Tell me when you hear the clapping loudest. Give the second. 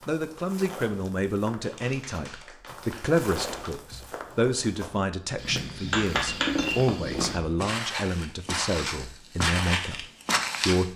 6 s.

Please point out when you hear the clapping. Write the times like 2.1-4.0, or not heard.
1.6-3.8, 5.9-6.7.